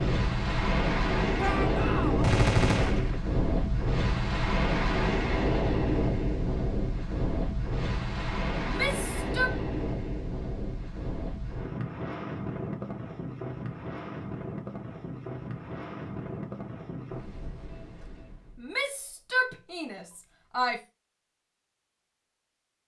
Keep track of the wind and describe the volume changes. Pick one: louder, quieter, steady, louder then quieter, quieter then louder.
quieter.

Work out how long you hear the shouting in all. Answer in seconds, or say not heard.
4 s.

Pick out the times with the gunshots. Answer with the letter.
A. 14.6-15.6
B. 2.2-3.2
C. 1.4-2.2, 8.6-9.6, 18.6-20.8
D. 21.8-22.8
B.